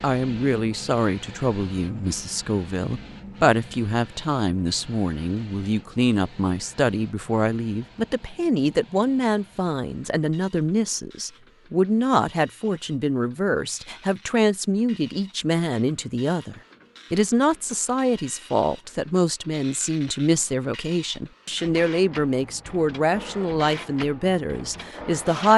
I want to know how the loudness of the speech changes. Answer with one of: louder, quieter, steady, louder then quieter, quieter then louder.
steady.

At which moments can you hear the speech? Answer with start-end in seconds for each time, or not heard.
0.0-25.5.